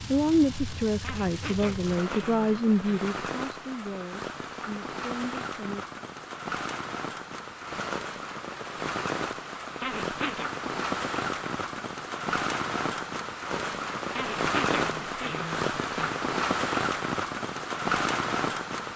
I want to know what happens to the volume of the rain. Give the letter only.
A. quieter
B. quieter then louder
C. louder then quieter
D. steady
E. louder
E.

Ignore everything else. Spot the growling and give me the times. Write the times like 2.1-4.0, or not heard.
1.0-3.0, 9.8-10.5, 14.1-16.1.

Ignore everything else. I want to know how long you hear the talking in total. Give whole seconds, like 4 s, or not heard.
6 s.